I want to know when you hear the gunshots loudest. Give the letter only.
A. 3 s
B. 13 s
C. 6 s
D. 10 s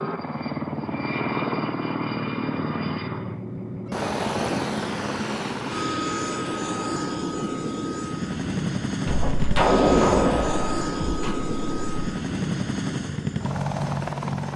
D.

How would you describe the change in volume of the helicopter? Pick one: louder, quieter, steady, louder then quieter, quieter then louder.
steady.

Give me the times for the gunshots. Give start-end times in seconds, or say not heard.
9.1-12.1.